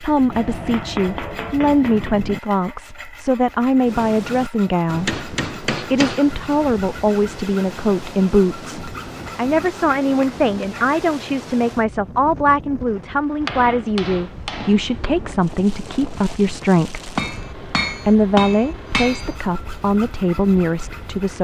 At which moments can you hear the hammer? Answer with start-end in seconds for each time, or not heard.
0.3-2.1, 4.9-6.8, 8.6-10.8, 13.4-15.2, 17.1-19.4.